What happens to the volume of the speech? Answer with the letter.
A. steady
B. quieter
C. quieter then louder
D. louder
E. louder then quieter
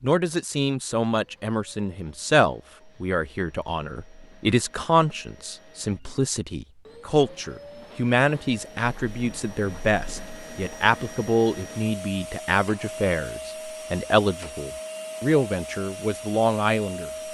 A.